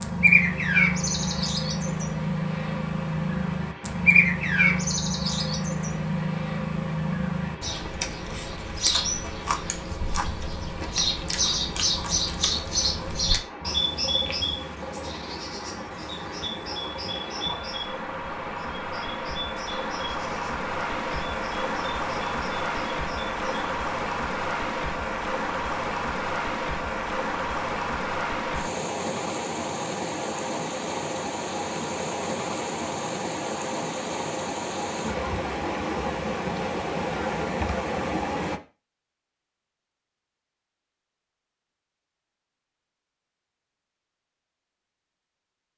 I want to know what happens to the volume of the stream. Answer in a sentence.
The loudness of the stream goes up.